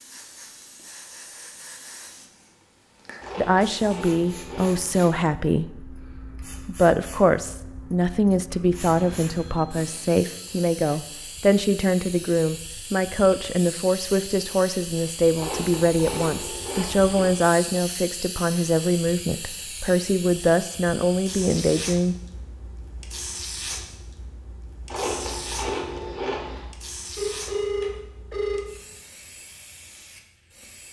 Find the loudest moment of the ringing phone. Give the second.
28 s.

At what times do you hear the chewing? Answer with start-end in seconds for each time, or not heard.
3.2-5.1, 15.3-17.4, 24.9-26.6.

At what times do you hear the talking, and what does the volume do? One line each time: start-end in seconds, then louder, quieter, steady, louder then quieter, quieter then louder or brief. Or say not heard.
3.4-6.0 brief
6.7-22.1 steady.